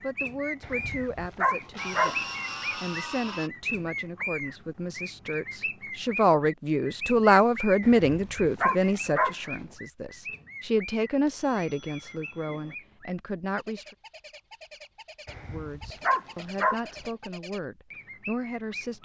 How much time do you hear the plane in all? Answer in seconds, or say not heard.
2 s.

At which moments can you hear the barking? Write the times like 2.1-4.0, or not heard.
0.6-2.1, 7.8-9.3, 15.2-16.8.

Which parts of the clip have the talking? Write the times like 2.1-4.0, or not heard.
0.0-13.9, 15.5-18.9.